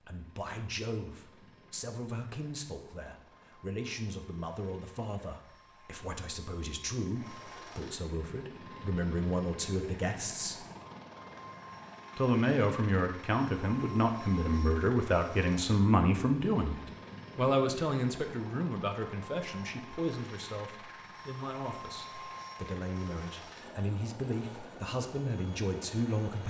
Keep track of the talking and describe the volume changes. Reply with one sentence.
The volume of the talking goes up, then down.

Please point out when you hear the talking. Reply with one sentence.
You can hear the talking from 0.0 to 10.7 s and from 12.2 to 26.4 s.